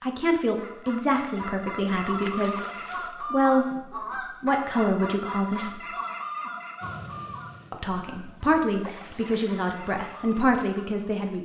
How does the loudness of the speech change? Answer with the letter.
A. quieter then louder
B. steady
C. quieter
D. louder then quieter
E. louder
B.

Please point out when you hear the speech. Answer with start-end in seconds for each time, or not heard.
0.0-5.8, 7.7-11.4.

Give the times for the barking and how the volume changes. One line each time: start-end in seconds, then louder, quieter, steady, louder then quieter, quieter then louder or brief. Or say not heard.
not heard.